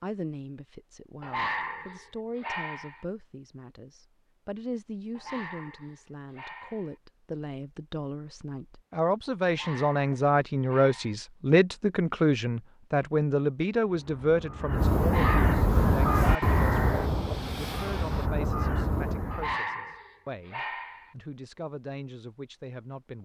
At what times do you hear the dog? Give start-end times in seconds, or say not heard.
1.2-3.0, 5.2-7.0, 9.4-11.2, 15.0-16.6, 19.3-21.1.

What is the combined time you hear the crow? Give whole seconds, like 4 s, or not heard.
6 s.